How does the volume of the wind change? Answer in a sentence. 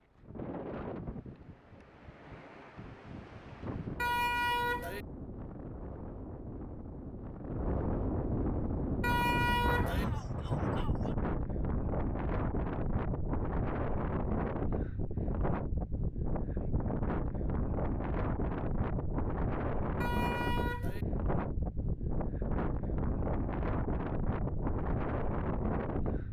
The volume of the wind goes up.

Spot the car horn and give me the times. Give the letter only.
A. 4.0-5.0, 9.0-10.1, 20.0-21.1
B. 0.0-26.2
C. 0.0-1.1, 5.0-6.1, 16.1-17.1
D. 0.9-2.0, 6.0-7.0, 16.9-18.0
A.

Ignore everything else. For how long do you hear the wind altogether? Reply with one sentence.
You can hear the wind for 26 seconds altogether.